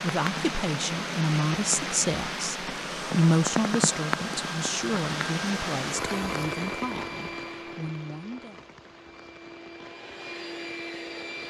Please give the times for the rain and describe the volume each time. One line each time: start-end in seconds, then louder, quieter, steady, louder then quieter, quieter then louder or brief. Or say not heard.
0.0-11.4 quieter.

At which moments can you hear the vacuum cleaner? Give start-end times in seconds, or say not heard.
2.8-11.4.